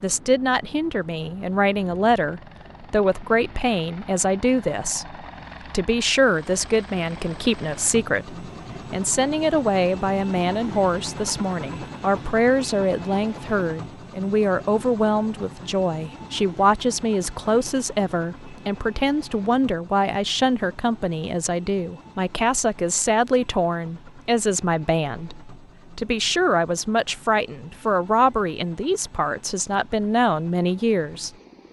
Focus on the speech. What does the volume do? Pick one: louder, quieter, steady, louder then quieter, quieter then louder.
steady.